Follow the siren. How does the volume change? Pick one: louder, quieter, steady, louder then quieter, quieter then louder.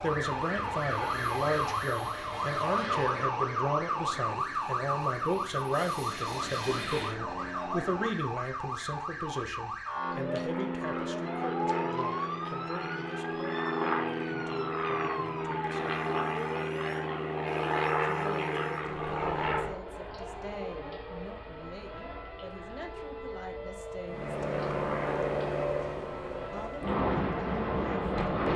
quieter.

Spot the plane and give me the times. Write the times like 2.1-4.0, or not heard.
0.0-8.3, 9.9-19.8, 24.1-28.5.